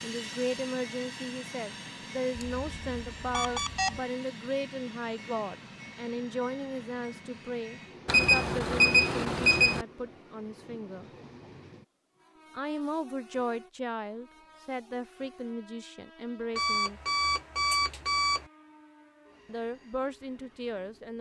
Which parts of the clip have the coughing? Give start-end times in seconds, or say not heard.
not heard.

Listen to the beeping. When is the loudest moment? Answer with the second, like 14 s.
9 s.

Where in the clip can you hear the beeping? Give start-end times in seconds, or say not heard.
2.4-4.0, 8.1-9.8, 16.6-18.4.